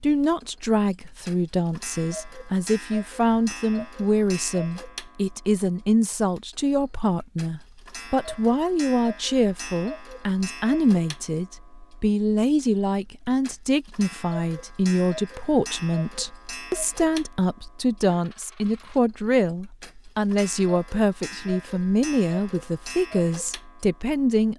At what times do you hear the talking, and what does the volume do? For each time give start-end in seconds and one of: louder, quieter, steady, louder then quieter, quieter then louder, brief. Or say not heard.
0.0-24.5 steady.